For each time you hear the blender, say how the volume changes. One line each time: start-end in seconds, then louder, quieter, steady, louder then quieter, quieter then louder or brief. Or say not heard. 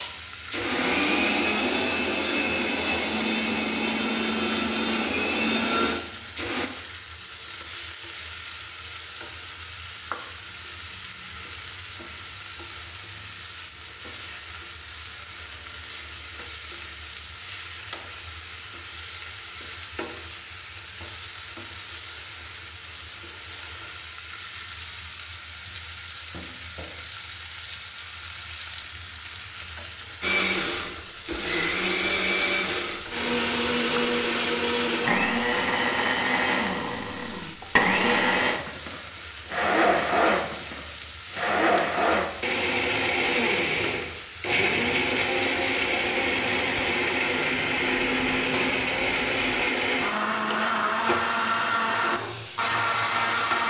0.0-6.7 steady
30.2-53.6 steady.